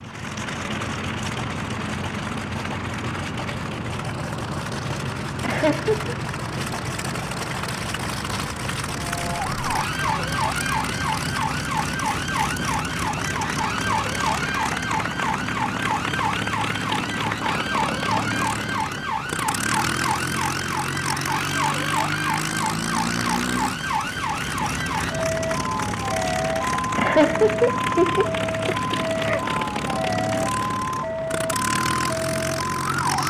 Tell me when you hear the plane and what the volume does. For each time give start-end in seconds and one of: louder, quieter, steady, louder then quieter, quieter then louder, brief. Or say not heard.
0.0-33.2 steady.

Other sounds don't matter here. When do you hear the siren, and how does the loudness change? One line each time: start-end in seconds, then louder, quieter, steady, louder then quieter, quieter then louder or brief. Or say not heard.
8.9-33.2 steady.